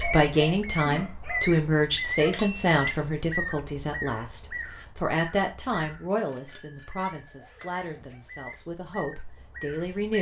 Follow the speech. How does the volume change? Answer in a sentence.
The volume of the speech goes down.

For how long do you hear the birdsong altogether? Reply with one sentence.
You can hear the birdsong for 10 seconds altogether.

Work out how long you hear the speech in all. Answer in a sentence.
The speech can be heard for 10 seconds in total.